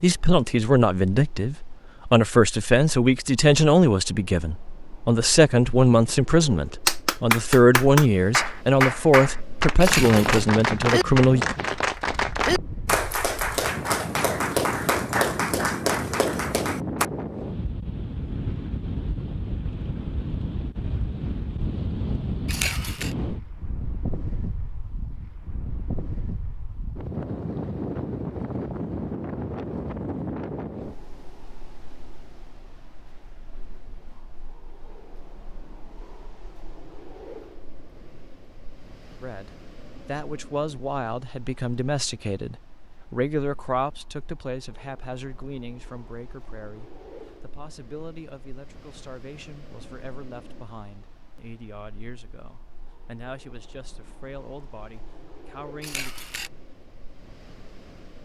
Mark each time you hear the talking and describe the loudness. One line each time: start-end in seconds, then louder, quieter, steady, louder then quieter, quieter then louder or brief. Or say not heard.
0.0-11.4 steady
39.2-56.1 quieter.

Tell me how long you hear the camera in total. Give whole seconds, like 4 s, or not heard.
2 s.